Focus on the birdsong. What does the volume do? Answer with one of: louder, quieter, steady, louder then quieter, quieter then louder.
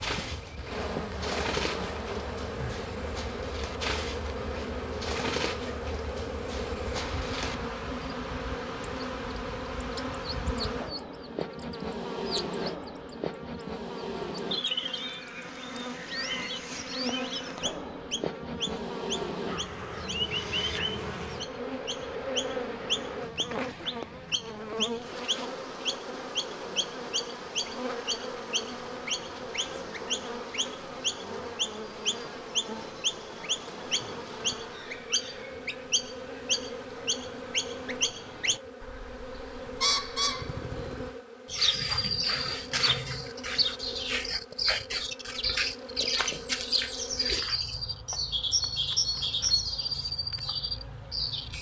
louder.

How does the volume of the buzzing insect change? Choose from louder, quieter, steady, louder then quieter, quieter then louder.
quieter.